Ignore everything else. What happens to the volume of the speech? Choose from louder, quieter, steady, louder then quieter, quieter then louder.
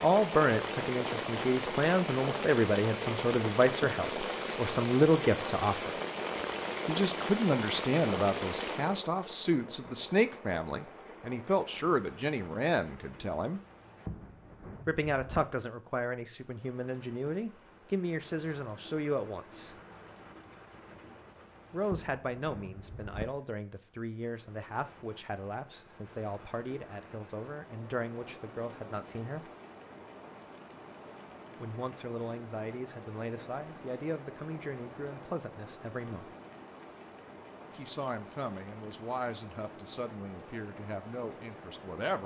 quieter.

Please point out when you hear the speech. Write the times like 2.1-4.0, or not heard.
0.0-5.9, 6.8-13.6, 14.8-19.8, 21.7-29.5, 31.6-36.3, 37.8-42.2.